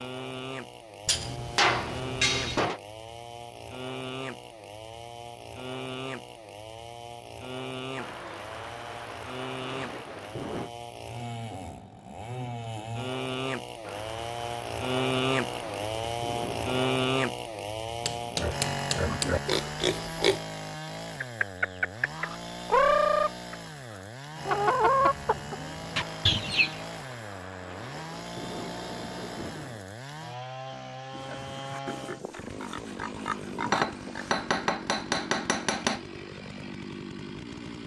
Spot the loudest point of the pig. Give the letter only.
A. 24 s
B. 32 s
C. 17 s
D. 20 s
D.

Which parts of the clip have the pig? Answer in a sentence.
You can hear the pig from 18.4 to 20.4 s and from 31.1 to 34.3 s.